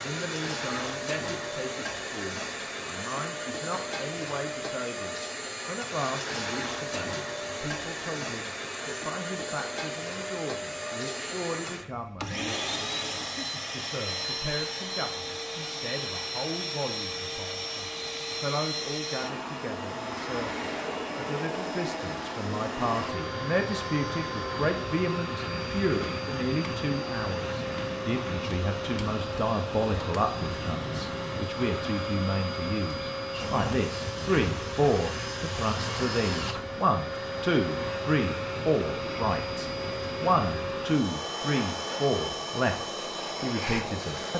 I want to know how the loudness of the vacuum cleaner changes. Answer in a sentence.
The loudness of the vacuum cleaner stays about the same.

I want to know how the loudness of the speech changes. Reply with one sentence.
The volume of the speech goes up.